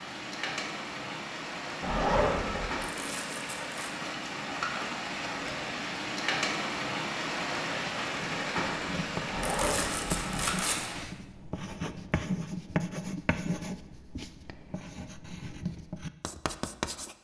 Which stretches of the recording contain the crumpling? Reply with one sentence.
You can hear the crumpling from 2.8 to 3.9 s and from 9.4 to 10.9 s.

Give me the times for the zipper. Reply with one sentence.
You can hear the zipper from 1.8 to 2.7 s and from 9.2 to 10.2 s.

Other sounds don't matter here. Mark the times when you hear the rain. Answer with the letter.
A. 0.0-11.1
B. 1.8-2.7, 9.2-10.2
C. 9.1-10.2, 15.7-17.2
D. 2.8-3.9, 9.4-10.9
A.